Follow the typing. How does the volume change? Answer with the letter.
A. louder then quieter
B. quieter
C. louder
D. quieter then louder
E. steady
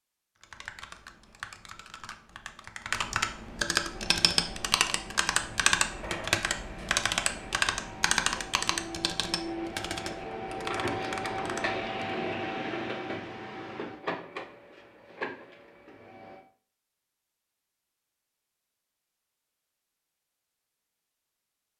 A.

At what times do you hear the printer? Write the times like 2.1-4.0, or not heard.
3.9-16.4.